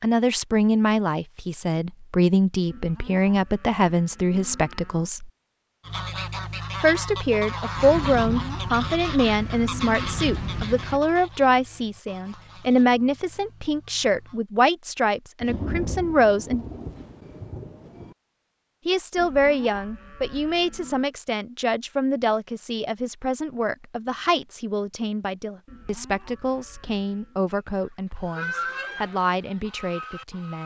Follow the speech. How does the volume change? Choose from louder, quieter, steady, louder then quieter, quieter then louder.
quieter.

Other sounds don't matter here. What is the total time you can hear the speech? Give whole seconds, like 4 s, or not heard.
27 s.